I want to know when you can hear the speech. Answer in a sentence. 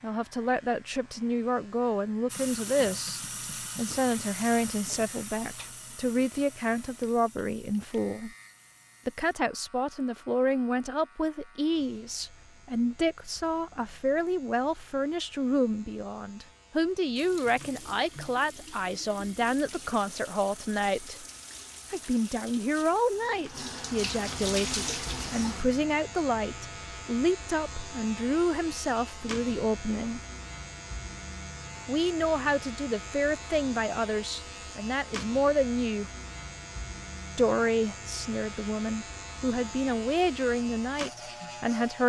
The speech can be heard from 0.0 to 8.3 s, from 9.1 to 21.2 s, from 21.9 to 30.2 s, from 31.9 to 36.1 s and from 37.4 to 42.0 s.